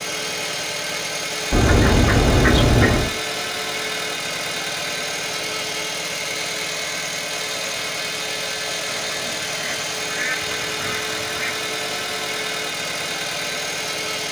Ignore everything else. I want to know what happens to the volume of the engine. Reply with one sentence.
The loudness of the engine stays about the same.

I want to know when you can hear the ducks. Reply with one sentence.
The ducks can be heard from 1.5 to 3.1 s and from 8.9 to 11.6 s.